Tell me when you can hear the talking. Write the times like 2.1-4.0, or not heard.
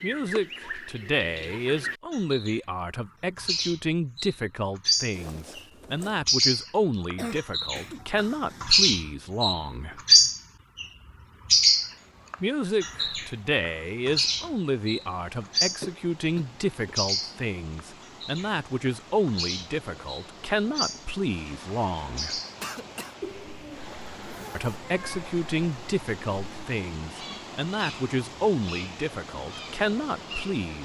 0.0-10.0, 12.4-22.4, 24.6-30.8.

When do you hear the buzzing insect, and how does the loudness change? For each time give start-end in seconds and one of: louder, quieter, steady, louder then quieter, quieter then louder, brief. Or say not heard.
not heard.